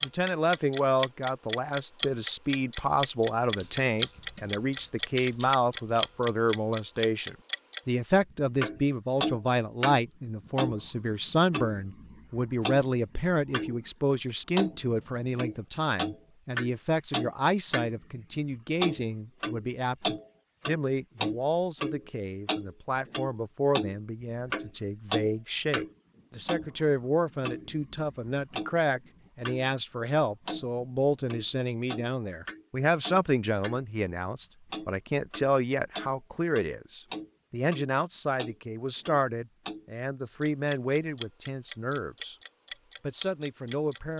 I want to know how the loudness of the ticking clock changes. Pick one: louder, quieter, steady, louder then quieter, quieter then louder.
quieter.